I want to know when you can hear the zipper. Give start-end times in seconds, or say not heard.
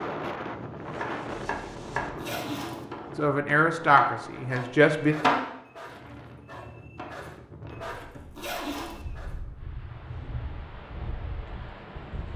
2.1-2.9, 8.3-9.1.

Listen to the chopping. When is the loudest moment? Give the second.
5 s.